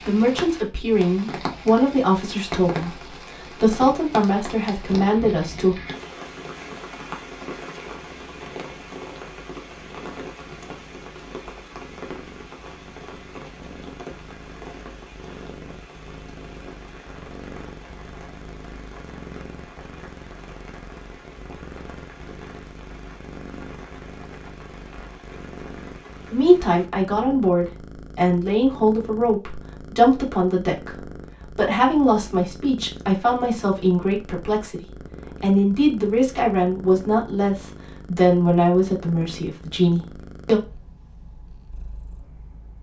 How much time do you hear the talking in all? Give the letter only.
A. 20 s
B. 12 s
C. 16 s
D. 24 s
A.